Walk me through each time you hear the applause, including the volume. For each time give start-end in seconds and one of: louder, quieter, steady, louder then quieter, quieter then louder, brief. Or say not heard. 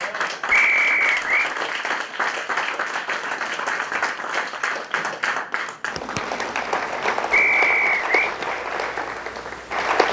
0.0-10.0 steady.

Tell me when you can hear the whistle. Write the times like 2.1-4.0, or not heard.
0.5-1.5, 7.3-8.3.